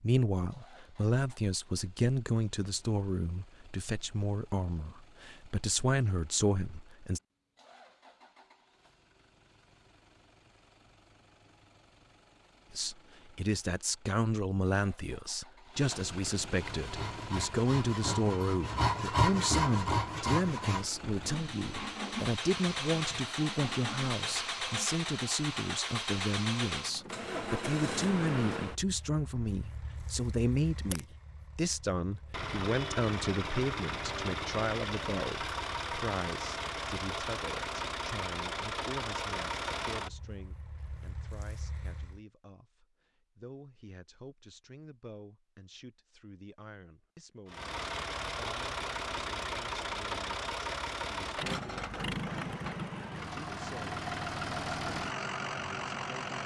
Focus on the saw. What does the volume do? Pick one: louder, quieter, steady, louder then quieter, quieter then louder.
louder then quieter.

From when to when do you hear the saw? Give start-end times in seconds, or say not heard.
16.6-24.8.